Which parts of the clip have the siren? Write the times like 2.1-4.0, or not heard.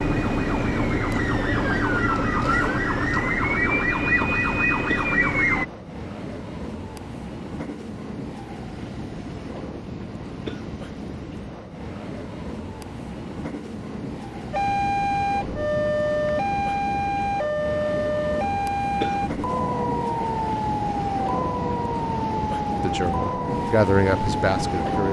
0.0-5.7, 14.5-25.0.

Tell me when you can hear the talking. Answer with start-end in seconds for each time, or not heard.
22.8-25.0.